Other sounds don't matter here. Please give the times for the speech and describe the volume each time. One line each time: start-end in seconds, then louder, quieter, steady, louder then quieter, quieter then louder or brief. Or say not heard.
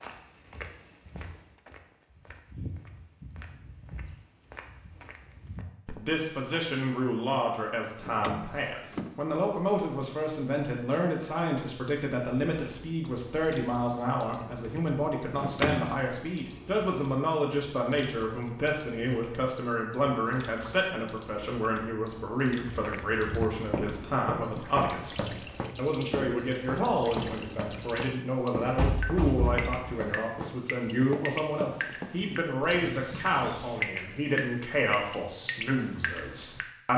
6.0-36.9 steady.